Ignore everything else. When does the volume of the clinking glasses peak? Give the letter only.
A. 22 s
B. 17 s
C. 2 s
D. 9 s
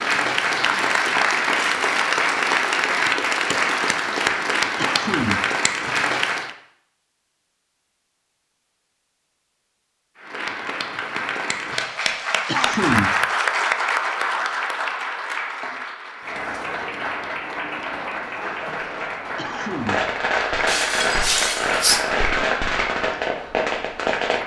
A.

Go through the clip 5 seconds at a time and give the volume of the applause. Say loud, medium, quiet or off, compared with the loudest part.
loud, loud, loud, medium, medium.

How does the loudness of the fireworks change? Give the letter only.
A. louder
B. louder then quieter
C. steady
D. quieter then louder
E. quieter
A.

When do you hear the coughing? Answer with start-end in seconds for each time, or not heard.
4.8-5.5, 12.4-13.2, 19.4-20.1.